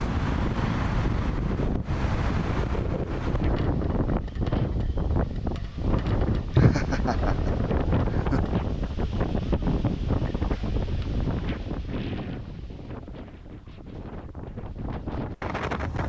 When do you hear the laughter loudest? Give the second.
7 s.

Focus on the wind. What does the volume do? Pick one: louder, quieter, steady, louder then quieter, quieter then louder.
quieter.